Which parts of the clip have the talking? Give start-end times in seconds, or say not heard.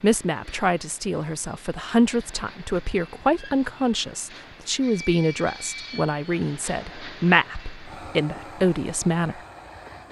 0.0-9.4.